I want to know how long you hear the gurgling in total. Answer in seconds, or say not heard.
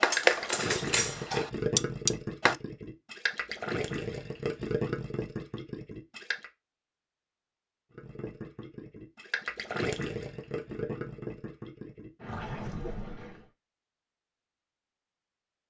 12 s.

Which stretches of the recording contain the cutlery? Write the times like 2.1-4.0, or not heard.
0.0-2.5.